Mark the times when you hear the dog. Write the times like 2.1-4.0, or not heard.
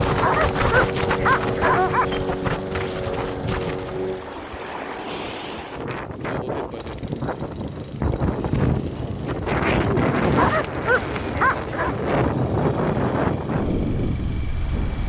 0.1-2.0, 10.2-11.9.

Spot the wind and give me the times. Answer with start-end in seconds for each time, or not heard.
0.0-15.0.